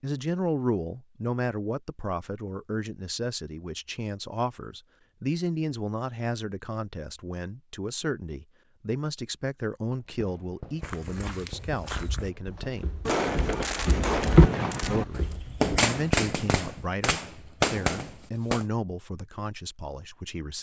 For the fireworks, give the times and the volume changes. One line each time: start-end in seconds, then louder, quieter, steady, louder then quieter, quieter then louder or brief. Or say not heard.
10.2-18.6 louder.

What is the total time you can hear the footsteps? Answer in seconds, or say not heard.
5 s.